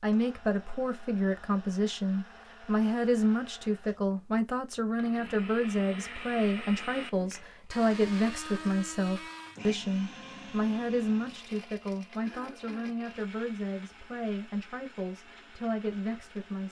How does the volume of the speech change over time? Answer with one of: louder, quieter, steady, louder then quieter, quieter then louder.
quieter.